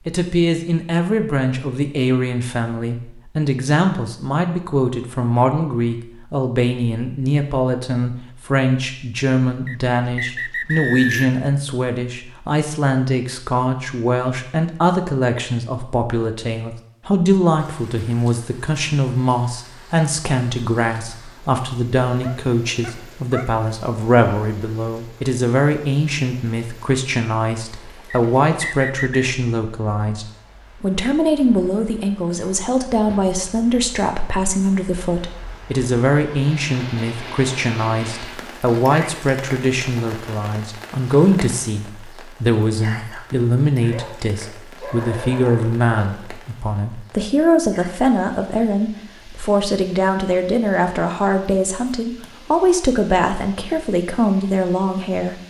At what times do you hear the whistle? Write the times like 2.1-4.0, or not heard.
9.7-11.3, 28.1-29.3.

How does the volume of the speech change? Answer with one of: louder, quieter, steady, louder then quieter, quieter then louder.
steady.